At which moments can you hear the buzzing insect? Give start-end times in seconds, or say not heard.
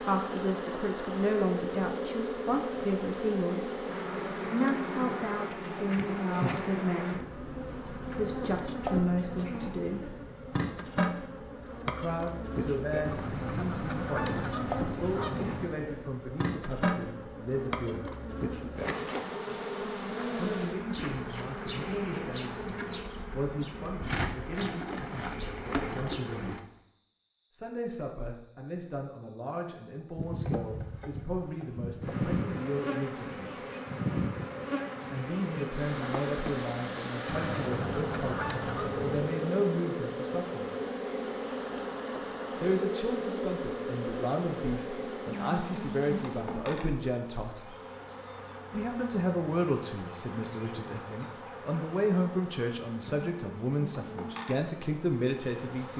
0.0-55.9.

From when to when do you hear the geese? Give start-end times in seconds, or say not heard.
13.1-15.8, 37.2-39.3.